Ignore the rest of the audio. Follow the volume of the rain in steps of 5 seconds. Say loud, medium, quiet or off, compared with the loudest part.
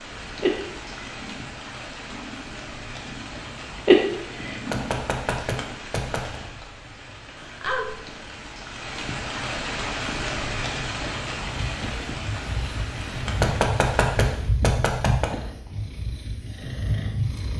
medium, loud, loud, off.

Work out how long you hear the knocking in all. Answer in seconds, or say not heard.
4 s.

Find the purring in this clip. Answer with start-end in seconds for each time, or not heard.
0.4-5.7, 11.5-17.5.